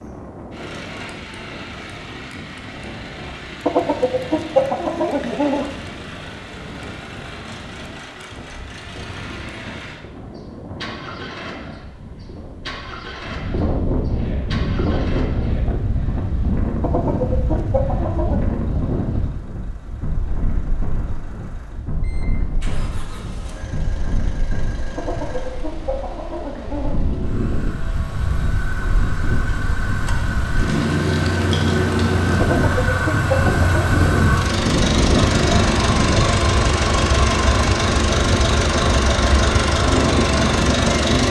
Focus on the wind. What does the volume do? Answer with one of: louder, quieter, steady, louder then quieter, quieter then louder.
louder.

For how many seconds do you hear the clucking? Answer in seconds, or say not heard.
7 s.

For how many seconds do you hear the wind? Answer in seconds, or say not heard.
41 s.